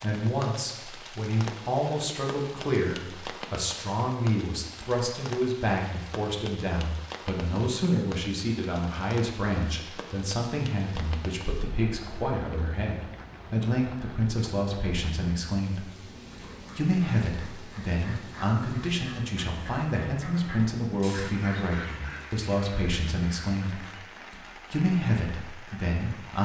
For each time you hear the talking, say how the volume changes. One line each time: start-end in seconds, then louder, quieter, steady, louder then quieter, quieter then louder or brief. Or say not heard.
0.0-26.4 steady.